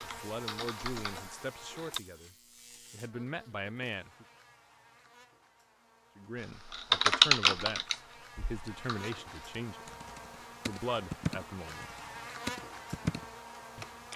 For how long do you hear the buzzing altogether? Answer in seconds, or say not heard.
14 s.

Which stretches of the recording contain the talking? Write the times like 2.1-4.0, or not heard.
0.0-4.2, 6.2-9.9, 10.7-11.9.